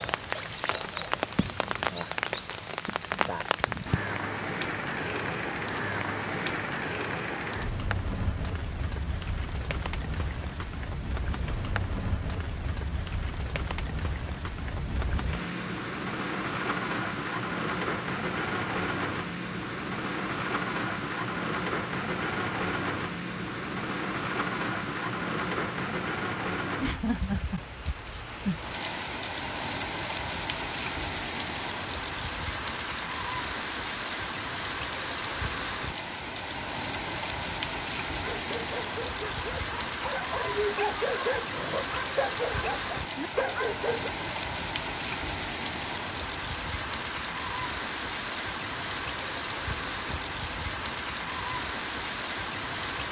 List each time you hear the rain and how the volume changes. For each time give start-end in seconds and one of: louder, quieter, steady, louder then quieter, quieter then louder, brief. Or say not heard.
0.0-53.0 steady.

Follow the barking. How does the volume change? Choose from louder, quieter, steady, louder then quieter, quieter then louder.
louder.